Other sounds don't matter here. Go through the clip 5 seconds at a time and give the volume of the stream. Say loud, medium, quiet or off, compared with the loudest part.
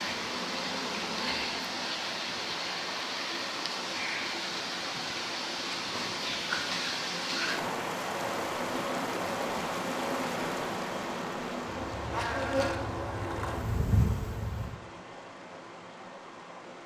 loud, loud, medium, quiet.